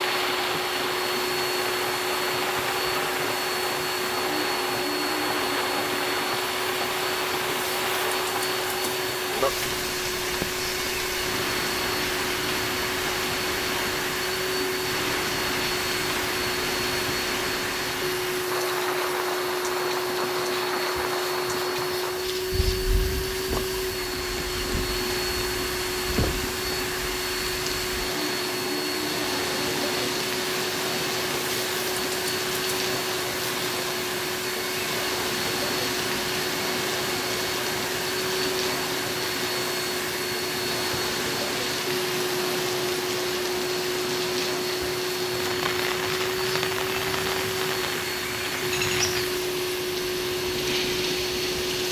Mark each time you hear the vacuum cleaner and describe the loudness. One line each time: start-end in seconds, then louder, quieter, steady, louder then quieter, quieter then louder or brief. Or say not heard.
0.0-51.8 steady.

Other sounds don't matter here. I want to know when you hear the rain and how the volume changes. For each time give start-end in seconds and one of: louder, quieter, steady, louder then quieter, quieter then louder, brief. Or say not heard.
0.0-51.8 steady.